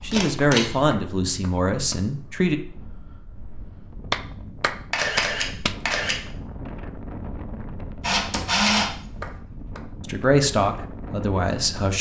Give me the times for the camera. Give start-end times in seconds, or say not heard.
0.1-0.7, 4.9-6.2, 8.0-9.3.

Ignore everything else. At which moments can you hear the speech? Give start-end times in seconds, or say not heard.
0.0-2.5, 10.0-11.9.